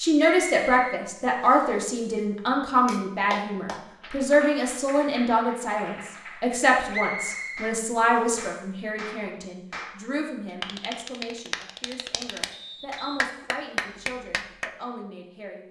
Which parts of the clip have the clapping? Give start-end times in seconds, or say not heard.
2.9-14.7.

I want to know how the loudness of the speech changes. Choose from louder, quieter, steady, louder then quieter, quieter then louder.
quieter.